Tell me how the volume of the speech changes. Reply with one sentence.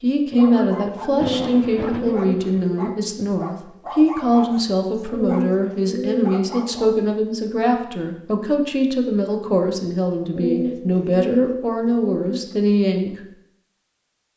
The loudness of the speech stays about the same.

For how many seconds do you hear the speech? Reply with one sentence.
The speech can be heard for 13 seconds in total.